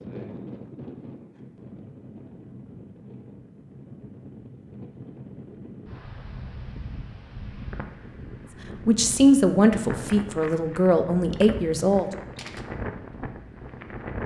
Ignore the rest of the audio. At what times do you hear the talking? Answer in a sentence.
The talking can be heard from 8.8 to 12.1 s.